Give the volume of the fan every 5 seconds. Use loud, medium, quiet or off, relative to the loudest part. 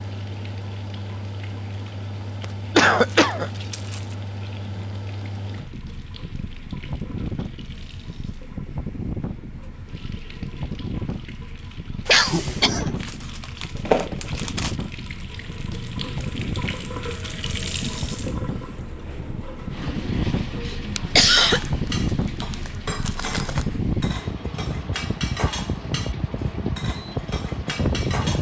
medium, medium, medium, medium, loud, loud.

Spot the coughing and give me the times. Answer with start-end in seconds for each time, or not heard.
2.8-3.5, 12.1-12.9, 20.6-21.6.